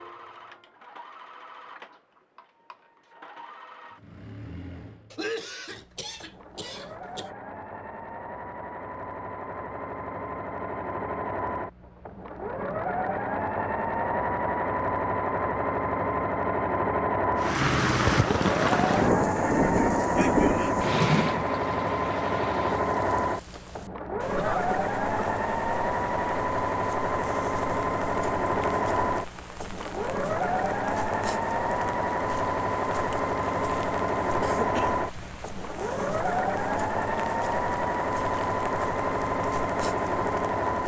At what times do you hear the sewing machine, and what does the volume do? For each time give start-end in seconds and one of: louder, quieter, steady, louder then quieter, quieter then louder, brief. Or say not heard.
0.0-40.8 louder.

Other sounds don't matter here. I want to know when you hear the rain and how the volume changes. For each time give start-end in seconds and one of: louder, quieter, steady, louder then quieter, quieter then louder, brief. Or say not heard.
17.4-40.8 quieter.